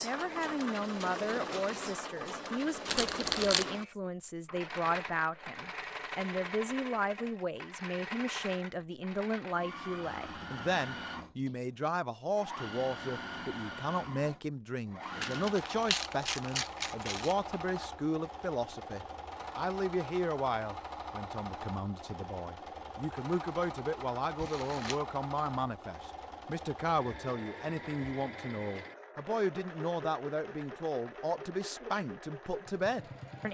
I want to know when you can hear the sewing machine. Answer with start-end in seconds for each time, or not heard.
0.0-33.4.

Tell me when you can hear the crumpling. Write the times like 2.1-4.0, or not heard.
2.9-3.6, 15.2-17.6, 24.4-25.0.